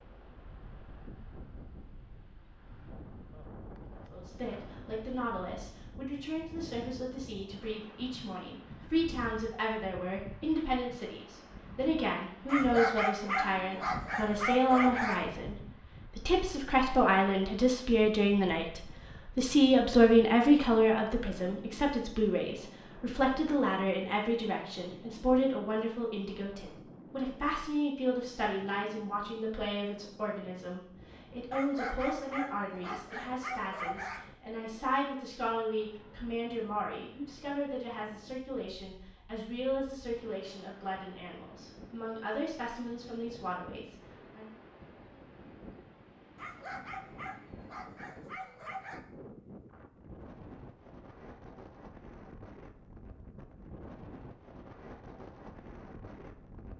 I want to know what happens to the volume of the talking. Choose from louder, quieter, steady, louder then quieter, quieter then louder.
louder then quieter.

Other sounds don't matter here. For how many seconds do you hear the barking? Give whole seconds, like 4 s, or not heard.
8 s.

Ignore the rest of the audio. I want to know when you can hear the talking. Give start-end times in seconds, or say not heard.
4.1-44.5.